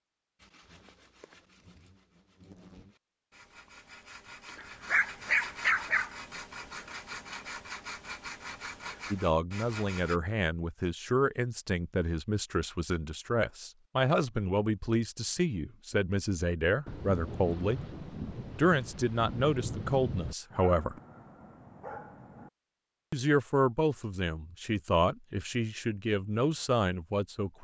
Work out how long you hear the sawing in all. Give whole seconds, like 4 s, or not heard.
10 s.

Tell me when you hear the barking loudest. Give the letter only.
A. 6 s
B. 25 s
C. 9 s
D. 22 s
A.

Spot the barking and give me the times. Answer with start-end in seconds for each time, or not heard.
4.5-6.1, 20.5-22.5.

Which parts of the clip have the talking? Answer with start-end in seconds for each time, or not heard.
9.1-17.8, 18.6-20.9, 23.1-27.5.